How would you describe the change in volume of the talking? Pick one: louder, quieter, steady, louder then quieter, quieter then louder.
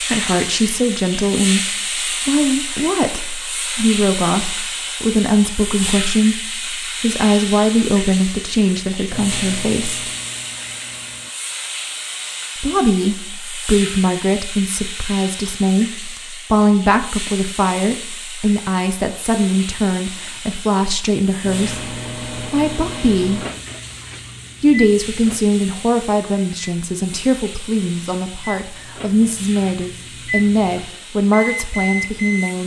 steady.